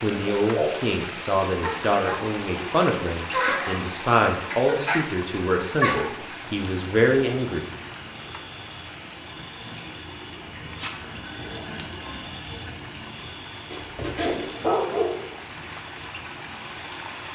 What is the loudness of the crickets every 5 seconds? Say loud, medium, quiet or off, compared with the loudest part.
loud, loud, loud, medium.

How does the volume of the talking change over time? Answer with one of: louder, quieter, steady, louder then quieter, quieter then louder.
steady.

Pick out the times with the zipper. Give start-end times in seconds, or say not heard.
13.7-14.7.